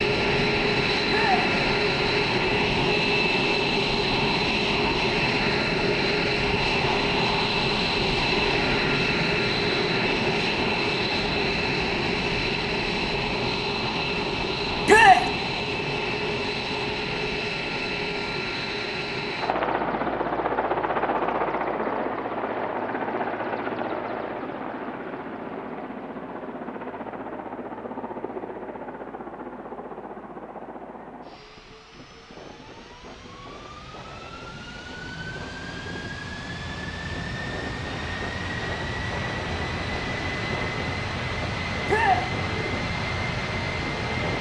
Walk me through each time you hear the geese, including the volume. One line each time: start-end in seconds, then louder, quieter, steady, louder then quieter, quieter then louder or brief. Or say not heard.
not heard.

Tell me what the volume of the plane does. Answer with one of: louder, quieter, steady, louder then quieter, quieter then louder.
quieter then louder.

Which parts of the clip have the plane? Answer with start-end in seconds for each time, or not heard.
0.0-44.3.